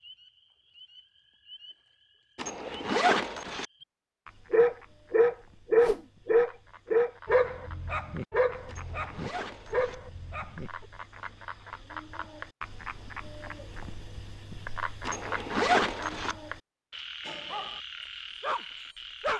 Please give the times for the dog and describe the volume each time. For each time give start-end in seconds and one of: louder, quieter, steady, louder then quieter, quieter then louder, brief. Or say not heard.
4.5-10.8 quieter
17.2-17.8 brief
18.4-19.3 brief.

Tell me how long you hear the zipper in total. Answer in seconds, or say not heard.
4 s.